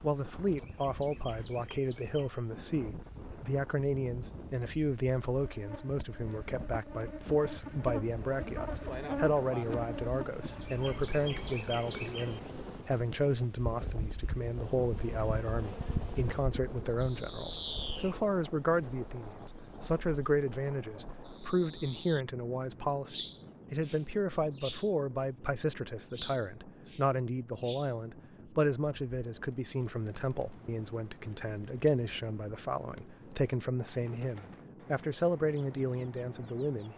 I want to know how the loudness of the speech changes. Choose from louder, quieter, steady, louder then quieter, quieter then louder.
steady.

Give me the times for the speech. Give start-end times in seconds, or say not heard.
0.0-36.9.